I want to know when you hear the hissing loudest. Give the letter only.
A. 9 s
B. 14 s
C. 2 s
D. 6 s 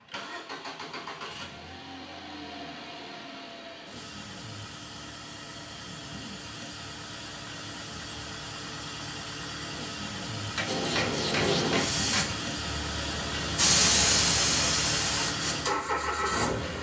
B.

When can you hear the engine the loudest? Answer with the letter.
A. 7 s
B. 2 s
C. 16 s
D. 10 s
C.